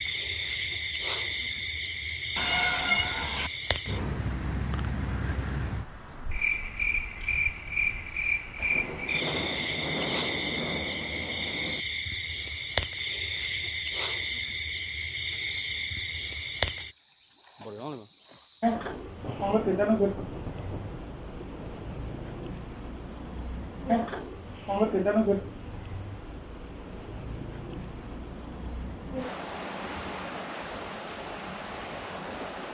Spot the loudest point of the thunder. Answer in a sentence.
The volume of the thunder peaks at 10 seconds.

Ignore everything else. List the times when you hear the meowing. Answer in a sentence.
You can hear the meowing from 2.4 to 3.5 s.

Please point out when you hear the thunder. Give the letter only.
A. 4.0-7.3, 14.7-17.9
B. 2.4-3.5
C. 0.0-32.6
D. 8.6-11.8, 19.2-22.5
D.